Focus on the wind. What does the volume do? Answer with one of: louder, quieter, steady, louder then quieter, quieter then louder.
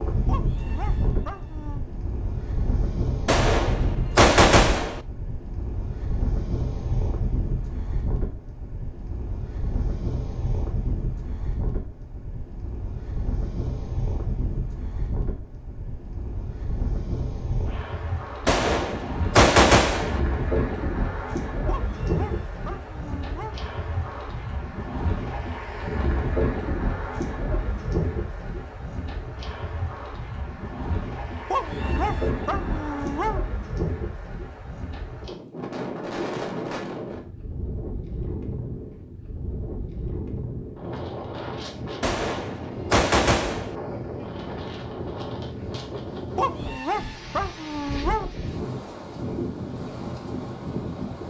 steady.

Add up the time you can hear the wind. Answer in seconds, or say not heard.
51 s.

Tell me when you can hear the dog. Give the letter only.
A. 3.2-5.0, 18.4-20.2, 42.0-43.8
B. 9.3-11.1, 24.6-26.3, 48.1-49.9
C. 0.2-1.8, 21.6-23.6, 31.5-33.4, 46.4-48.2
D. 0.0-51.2
C.